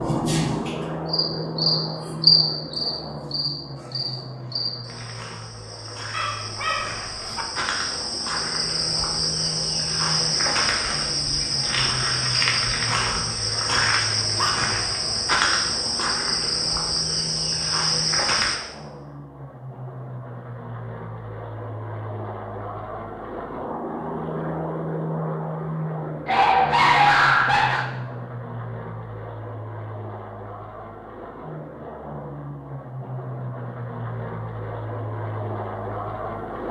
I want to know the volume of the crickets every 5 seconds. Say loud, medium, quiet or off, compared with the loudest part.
loud, medium, loud, loud, off, off, off, off.